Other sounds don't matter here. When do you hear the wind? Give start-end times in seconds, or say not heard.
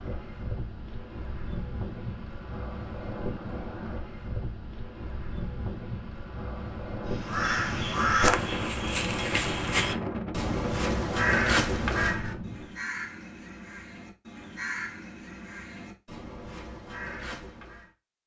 0.0-12.8.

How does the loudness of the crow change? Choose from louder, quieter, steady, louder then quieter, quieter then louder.
quieter.